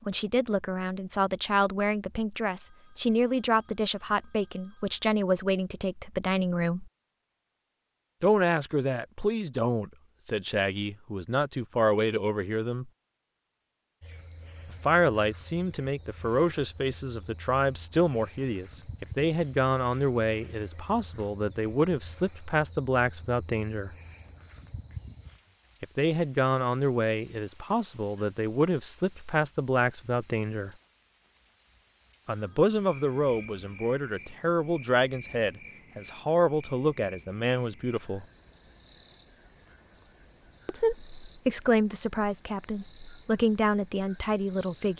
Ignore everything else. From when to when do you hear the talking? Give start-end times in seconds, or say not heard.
0.1-6.9, 8.2-12.9, 14.7-23.9, 25.8-30.7, 32.2-38.2, 40.6-44.9.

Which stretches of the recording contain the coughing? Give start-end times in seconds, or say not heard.
not heard.